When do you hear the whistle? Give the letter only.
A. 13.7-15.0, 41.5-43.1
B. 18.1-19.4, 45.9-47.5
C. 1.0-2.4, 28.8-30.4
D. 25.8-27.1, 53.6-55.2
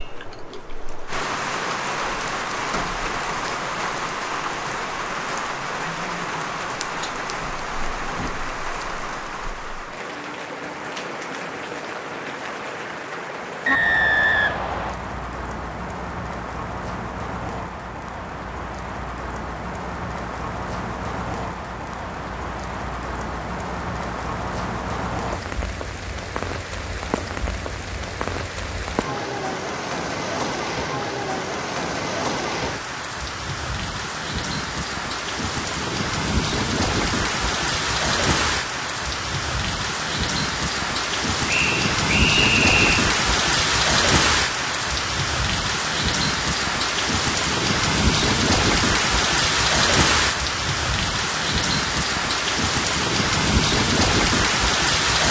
A.